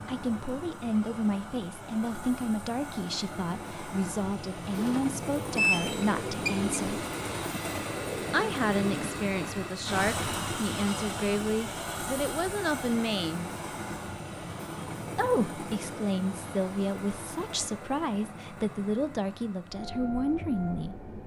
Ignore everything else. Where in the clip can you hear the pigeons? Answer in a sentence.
The pigeons can be heard from 4.7 to 9.7 s.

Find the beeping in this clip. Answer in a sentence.
The beeping can be heard from 5.5 to 6.7 s.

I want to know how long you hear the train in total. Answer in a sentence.
You can hear the train for 21 seconds altogether.